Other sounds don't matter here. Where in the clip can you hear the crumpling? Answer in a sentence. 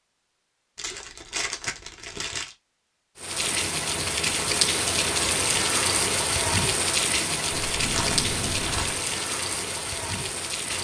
You can hear the crumpling from 0.8 to 2.5 s and from 7.7 to 8.9 s.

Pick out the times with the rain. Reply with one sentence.
You can hear the rain from 3.1 to 10.7 s.